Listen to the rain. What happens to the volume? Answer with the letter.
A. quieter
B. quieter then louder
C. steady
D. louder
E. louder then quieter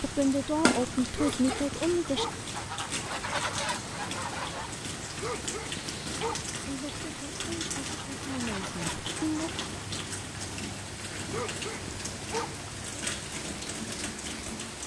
C.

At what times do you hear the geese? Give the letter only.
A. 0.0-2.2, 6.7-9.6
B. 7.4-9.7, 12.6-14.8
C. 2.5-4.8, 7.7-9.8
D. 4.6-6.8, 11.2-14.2
C.